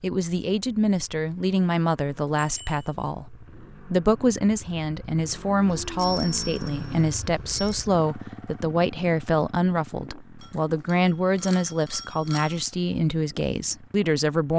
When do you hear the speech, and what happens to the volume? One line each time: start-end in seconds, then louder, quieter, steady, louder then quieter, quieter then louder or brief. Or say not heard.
0.0-14.5 steady.